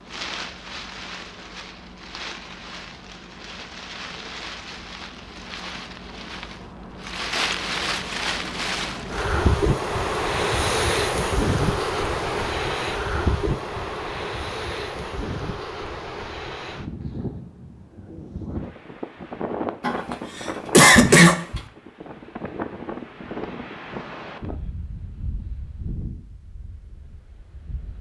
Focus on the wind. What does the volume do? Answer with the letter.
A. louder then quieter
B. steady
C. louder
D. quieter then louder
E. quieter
A.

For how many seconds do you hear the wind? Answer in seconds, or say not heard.
28 s.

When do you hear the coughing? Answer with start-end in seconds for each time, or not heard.
19.8-21.6.